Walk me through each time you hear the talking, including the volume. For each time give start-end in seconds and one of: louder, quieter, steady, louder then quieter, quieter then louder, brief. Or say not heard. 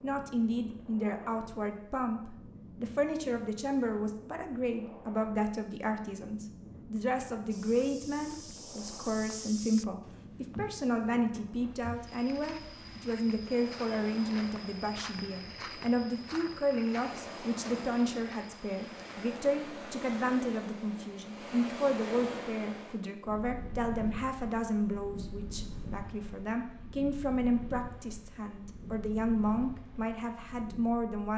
0.0-31.3 steady.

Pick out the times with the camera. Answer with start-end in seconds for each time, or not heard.
not heard.